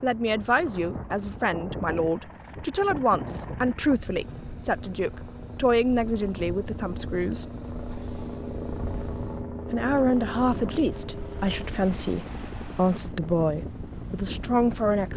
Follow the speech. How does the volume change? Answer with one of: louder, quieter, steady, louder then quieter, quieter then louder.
steady.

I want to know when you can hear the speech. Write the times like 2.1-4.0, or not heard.
0.0-7.5, 9.7-15.1.